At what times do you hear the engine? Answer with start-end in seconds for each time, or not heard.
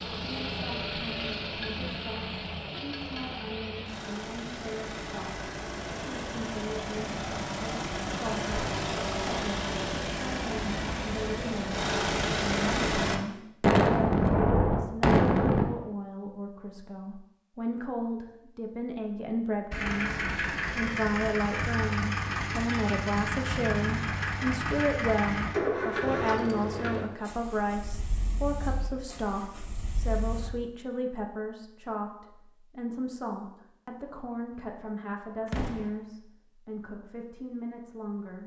0.0-13.2, 19.7-30.5.